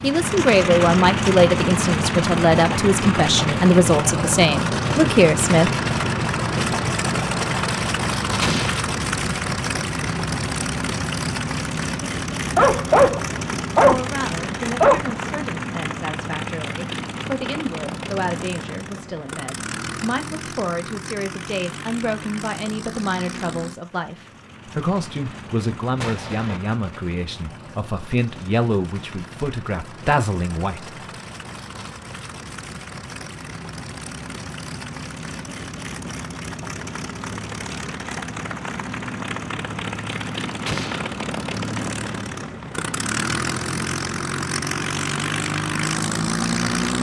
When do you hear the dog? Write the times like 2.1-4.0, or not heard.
12.5-15.4.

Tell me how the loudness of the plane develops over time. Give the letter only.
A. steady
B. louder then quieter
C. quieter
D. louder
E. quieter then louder
E.